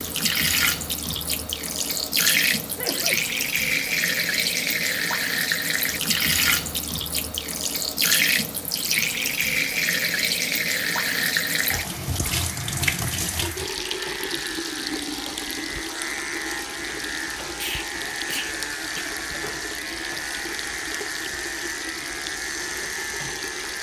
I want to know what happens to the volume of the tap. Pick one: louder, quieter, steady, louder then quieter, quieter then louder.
quieter.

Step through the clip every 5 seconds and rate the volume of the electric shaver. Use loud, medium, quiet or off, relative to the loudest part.
off, off, medium, loud, loud.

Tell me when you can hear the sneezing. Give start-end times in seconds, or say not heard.
2.8-3.2, 17.6-19.1.